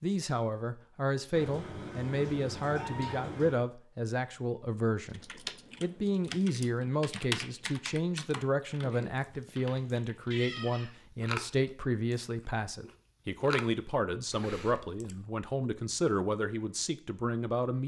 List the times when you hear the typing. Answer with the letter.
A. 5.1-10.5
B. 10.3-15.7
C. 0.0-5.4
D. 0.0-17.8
A.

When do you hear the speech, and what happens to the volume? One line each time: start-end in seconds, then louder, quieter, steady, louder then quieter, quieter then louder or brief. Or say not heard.
0.0-17.8 steady.